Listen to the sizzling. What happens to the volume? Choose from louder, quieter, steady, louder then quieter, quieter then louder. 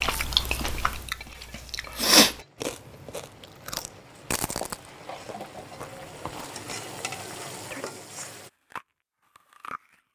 louder.